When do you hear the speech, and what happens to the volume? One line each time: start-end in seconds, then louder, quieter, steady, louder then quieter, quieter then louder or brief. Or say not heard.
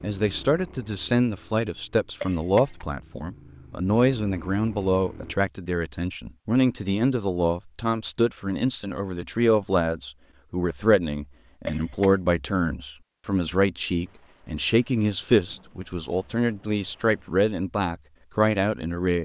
0.0-19.2 steady.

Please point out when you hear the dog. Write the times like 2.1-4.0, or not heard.
not heard.